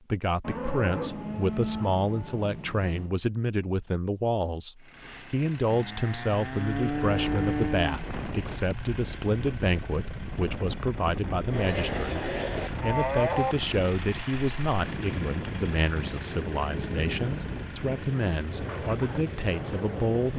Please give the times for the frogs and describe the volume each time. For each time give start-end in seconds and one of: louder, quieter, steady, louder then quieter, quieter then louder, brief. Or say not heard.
not heard.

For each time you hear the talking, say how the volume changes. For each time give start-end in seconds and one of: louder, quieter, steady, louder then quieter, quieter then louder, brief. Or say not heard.
0.1-20.3 steady.